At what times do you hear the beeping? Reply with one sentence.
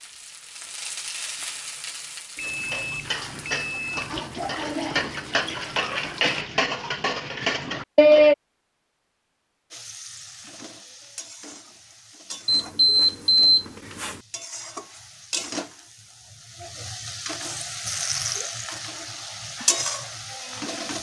The beeping can be heard from 2.4 to 4.0 s and from 12.4 to 14.2 s.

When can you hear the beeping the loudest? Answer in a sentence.
The volume of the beeping peaks at 13 seconds.